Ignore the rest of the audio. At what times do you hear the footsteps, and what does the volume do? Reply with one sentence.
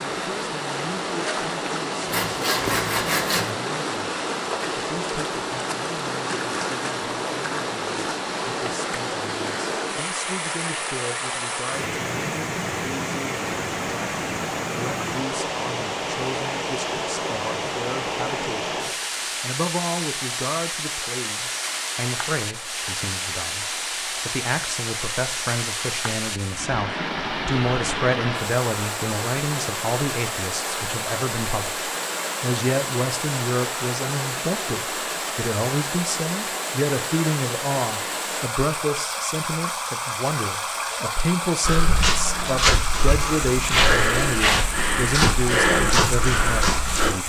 The footsteps can be heard from 41.6 to 47.1 s, at a steady volume.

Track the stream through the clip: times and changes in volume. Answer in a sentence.
You can hear the stream from 0.0 to 47.2 s, at a steady volume.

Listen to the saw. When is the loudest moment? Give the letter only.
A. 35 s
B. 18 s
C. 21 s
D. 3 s
D.